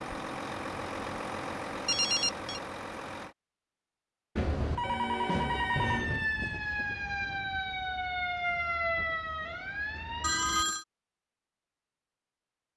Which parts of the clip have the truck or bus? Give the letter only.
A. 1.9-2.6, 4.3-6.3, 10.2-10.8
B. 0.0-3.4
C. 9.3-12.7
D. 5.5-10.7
B.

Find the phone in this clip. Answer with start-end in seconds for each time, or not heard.
1.9-2.6, 4.3-6.3, 10.2-10.8.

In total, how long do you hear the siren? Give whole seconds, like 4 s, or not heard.
5 s.